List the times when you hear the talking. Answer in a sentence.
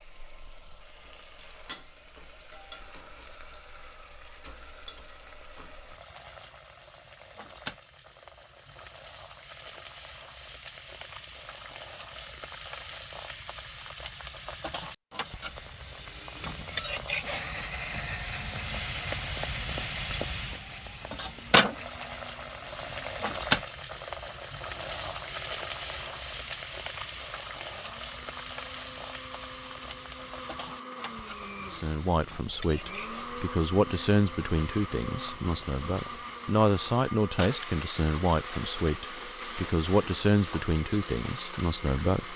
You can hear the talking from 31.6 to 42.3 s.